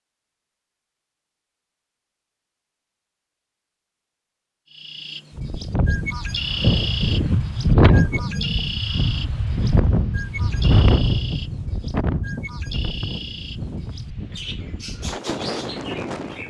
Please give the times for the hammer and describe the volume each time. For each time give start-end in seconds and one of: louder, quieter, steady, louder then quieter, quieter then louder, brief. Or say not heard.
not heard.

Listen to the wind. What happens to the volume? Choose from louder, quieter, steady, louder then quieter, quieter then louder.
quieter.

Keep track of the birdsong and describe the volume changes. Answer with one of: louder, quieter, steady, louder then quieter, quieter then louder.
quieter.